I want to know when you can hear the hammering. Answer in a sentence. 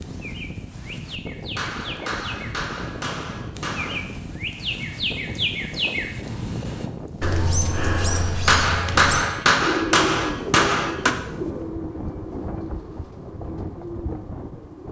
You can hear the hammering from 1.6 to 4.0 s and from 8.4 to 11.2 s.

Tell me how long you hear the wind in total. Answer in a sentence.
The wind can be heard for 15 seconds in total.